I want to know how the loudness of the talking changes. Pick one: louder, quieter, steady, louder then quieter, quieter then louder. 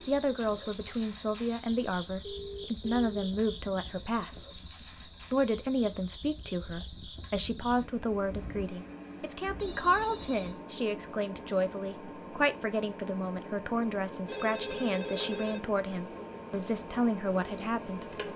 steady.